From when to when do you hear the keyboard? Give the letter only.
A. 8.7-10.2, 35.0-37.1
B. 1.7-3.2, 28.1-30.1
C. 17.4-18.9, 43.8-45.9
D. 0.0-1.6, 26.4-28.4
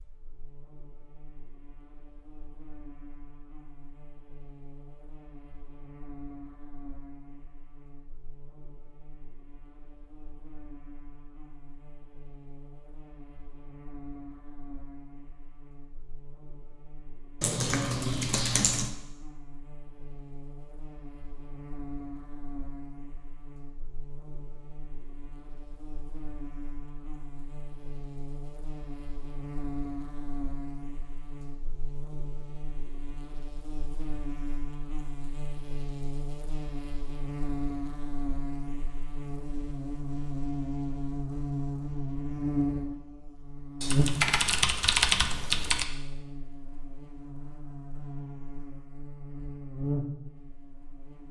C.